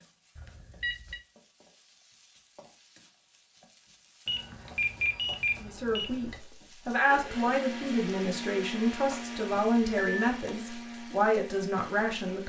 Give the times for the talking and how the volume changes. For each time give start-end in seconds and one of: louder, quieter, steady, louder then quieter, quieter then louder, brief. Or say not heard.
5.6-12.4 steady.